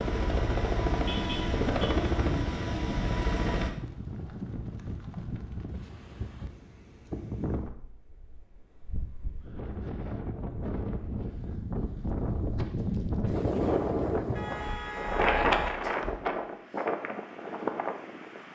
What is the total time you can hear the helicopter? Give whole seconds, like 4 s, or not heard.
4 s.